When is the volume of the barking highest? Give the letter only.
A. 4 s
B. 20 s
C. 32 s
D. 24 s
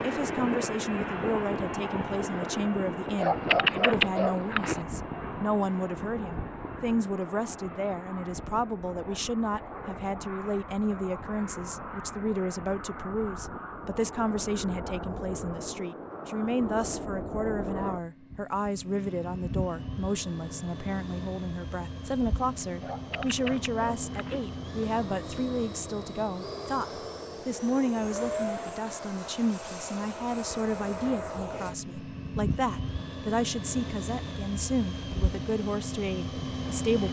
A.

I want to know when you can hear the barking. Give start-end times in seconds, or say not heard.
3.1-4.8, 22.8-24.4.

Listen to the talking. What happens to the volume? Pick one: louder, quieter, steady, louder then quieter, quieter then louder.
steady.